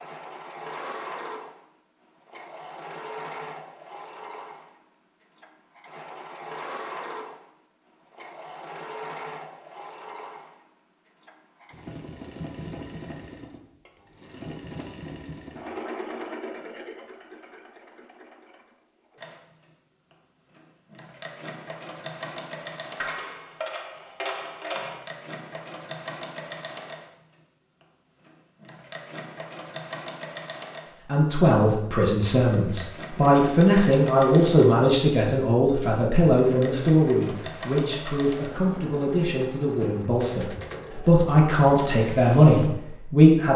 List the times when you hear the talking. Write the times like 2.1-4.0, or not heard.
31.1-43.5.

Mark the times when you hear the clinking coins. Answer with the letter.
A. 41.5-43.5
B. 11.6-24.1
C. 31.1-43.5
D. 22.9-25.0
D.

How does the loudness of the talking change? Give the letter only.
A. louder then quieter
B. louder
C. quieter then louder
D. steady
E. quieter
C.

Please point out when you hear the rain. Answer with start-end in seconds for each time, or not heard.
not heard.